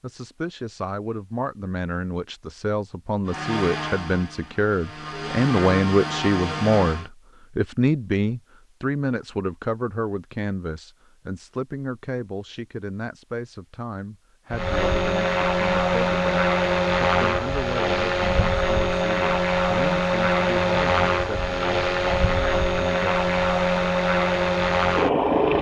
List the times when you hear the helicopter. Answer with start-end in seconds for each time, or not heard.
3.2-7.1, 14.5-25.5.